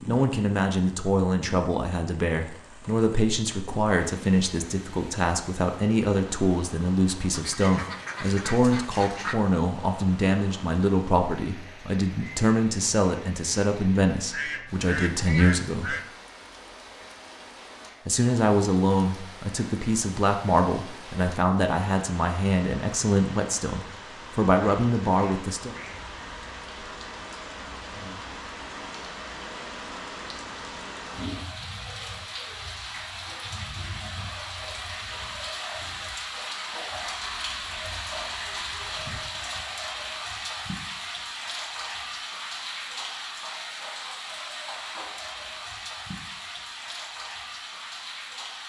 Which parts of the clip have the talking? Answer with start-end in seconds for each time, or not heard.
0.1-15.9, 18.1-25.8.